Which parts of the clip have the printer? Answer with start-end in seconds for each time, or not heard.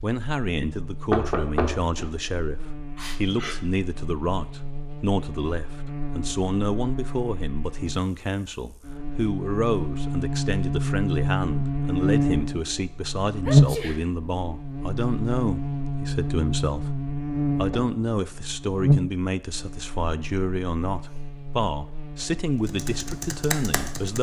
not heard.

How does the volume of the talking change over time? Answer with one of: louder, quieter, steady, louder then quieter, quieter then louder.
steady.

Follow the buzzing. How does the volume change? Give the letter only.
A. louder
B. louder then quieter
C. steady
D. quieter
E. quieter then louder
B.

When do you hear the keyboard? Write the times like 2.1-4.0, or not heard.
22.6-24.1.